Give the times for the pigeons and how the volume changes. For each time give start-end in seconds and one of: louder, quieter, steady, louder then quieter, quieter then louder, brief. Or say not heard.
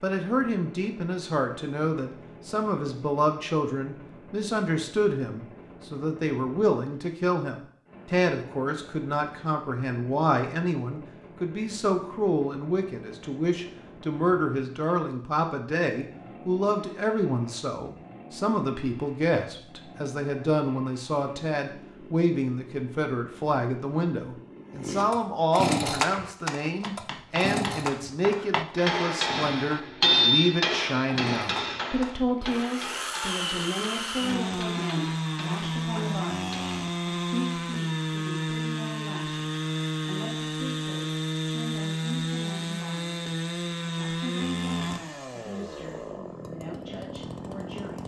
not heard.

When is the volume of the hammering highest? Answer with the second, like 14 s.
30 s.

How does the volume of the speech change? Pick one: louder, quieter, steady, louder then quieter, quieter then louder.
quieter.